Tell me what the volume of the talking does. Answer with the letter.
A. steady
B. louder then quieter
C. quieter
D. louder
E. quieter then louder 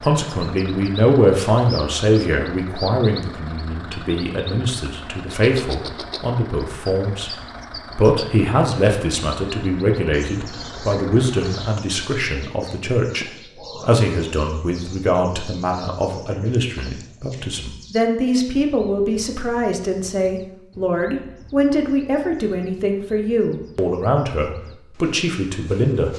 A.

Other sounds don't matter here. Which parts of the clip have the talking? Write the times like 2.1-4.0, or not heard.
0.0-7.3, 8.0-26.1.